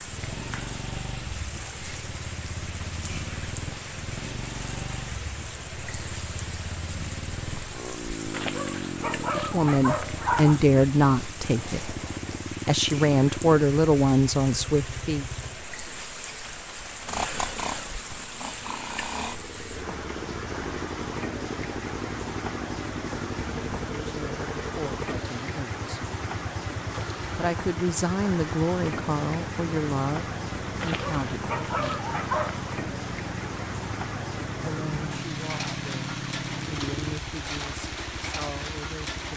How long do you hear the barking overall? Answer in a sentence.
You can hear the barking for 4 seconds altogether.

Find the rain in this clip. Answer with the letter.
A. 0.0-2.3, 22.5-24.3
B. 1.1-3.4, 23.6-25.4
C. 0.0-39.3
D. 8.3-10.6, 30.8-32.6
C.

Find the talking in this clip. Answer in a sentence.
You can hear the talking from 9.3 to 11.9 s, from 12.7 to 15.2 s, from 24.0 to 25.9 s, from 27.4 to 32.0 s and from 34.6 to 39.3 s.